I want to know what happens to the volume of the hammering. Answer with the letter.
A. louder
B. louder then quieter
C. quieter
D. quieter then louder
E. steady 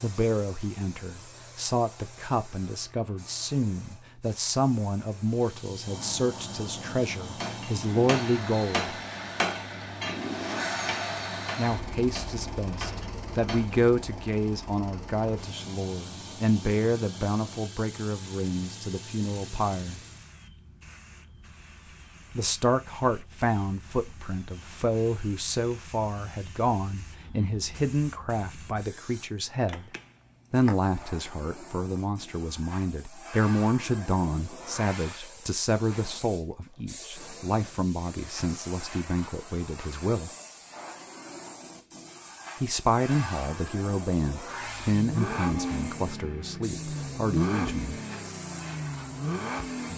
C.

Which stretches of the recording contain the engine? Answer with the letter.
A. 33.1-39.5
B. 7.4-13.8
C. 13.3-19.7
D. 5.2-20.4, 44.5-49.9
D.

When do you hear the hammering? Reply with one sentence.
You can hear the hammering from 7.4 to 13.8 s.